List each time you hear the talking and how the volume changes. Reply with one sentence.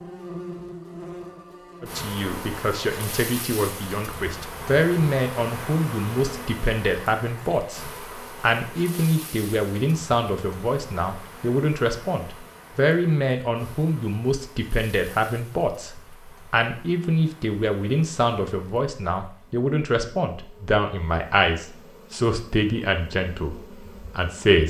The talking can be heard from 1.8 to 24.6 s, at a steady volume.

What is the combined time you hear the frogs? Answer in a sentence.
You can't hear the frogs here.